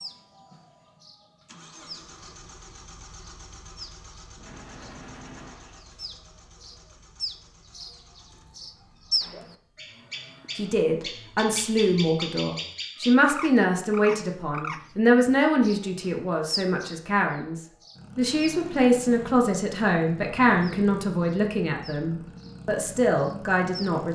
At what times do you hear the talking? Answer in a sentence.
The talking can be heard from 10.6 to 24.0 s.